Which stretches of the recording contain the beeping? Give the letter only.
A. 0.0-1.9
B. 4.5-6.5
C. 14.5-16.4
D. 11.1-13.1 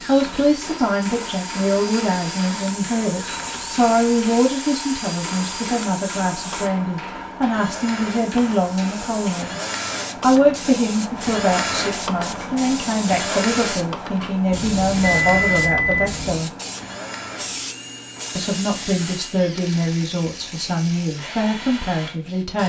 C.